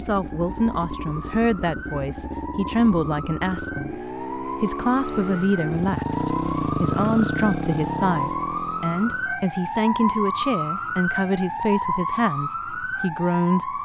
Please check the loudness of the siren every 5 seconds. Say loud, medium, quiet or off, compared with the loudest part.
medium, loud, loud.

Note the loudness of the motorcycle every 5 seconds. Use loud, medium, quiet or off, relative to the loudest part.
medium, loud, off.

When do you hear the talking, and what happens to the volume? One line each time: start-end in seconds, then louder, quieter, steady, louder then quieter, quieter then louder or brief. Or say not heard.
0.0-13.8 steady.